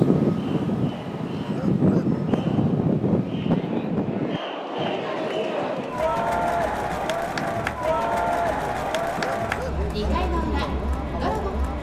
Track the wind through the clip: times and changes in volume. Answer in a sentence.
You can hear the wind from 0.0 to 11.7 s, getting quieter.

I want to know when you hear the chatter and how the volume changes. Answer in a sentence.
You can hear the chatter from 0.2 to 11.7 s, getting louder.